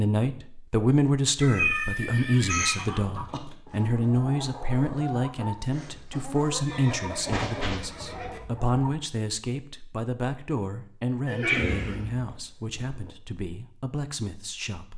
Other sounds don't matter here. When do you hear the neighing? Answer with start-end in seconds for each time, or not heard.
1.6-3.4, 6.3-8.4, 11.2-13.1.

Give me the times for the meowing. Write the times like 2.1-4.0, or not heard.
1.4-2.8, 6.7-7.8, 11.4-12.0.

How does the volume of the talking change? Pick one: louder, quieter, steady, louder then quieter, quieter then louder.
quieter.